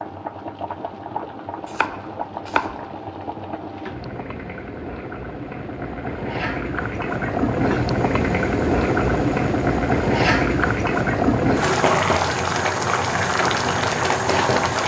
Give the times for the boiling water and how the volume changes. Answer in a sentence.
You can hear the boiling water from 0.0 to 14.8 s, getting louder.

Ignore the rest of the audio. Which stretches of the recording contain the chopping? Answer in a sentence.
The chopping can be heard from 1.6 to 2.9 s.